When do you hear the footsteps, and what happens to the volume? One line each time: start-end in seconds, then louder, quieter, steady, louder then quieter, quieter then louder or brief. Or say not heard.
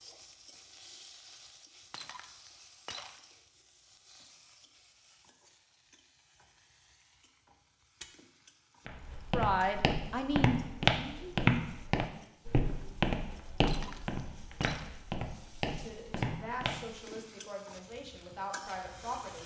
8.8-17.2 louder then quieter.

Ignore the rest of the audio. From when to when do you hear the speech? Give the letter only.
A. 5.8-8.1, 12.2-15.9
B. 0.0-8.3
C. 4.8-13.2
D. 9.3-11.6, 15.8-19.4
D.